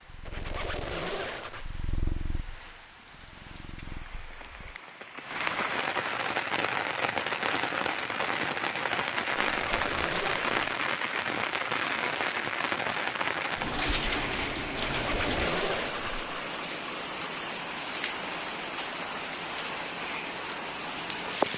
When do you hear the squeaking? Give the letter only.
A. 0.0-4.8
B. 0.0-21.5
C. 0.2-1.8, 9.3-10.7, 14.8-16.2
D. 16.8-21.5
C.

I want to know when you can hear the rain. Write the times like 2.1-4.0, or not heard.
0.0-21.5.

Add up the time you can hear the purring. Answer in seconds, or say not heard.
5 s.